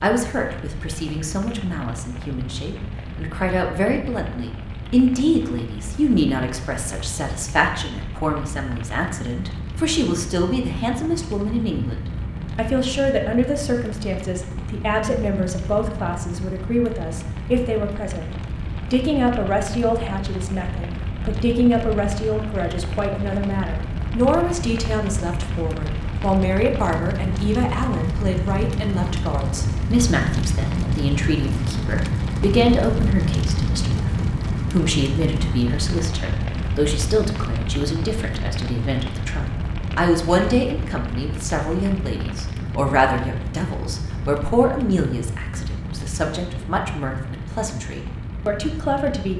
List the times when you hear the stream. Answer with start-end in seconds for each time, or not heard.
not heard.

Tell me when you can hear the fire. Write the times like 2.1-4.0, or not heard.
0.0-49.3.